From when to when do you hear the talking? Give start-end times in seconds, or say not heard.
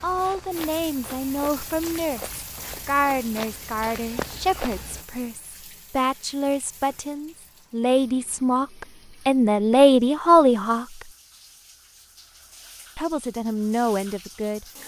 0.0-11.1, 12.9-14.7.